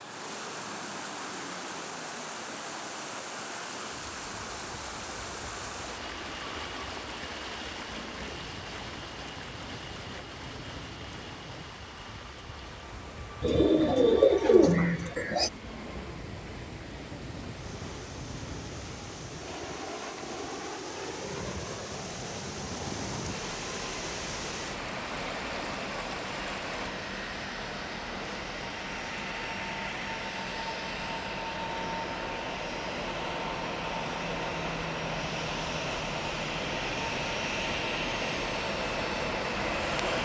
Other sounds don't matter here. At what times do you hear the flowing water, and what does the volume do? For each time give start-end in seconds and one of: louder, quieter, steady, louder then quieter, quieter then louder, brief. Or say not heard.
0.0-26.9 quieter then louder.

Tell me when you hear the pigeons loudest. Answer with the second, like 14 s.
14 s.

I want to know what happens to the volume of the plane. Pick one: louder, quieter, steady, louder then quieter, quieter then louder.
louder.